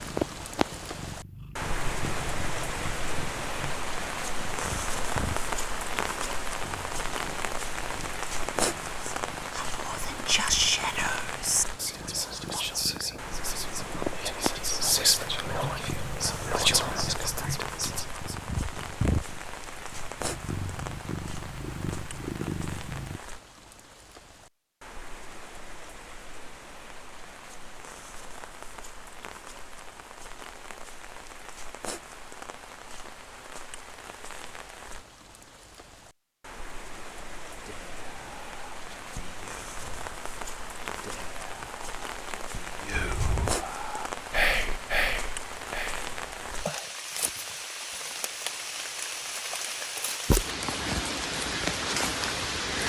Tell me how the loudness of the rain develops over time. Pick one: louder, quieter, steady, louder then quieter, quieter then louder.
quieter then louder.